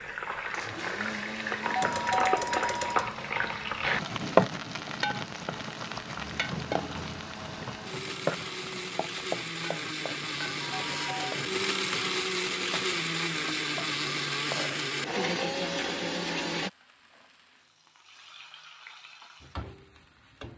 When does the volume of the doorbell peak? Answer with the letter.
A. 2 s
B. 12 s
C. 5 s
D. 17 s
A.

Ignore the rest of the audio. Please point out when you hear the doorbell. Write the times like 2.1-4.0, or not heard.
1.6-3.1, 10.6-11.4.